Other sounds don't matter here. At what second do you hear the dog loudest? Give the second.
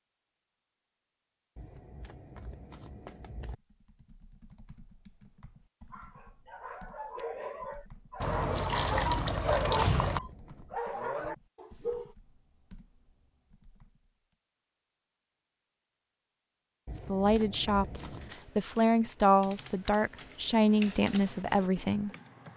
10 s.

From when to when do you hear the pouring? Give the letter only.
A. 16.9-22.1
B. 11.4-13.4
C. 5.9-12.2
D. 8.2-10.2
D.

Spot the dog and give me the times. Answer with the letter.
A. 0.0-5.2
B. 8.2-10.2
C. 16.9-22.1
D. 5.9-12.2
D.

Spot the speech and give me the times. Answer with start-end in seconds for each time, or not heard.
16.9-22.1.